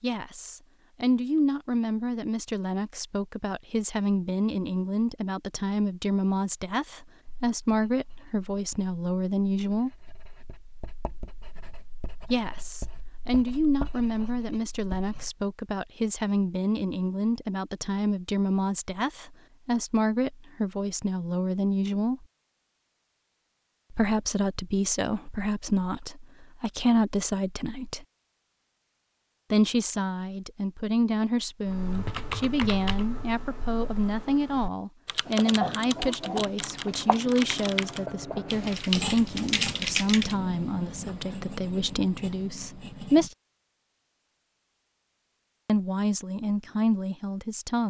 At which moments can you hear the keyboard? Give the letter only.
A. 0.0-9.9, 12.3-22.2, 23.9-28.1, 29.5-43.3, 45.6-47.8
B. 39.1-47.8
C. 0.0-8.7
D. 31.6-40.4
D.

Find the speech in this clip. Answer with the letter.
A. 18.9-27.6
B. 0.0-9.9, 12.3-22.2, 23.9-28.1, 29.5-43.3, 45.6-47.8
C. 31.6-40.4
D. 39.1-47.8
B.